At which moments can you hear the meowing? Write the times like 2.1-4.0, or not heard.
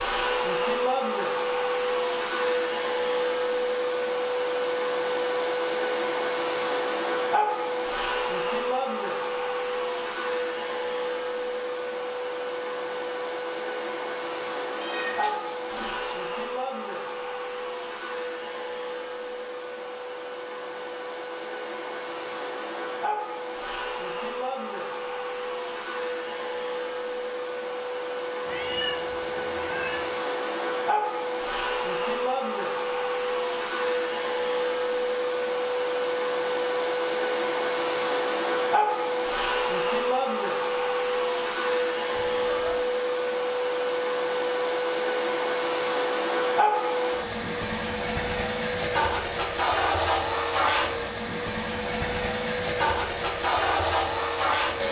14.8-16.1, 28.4-30.1, 42.1-42.8.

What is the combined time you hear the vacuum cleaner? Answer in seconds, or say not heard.
55 s.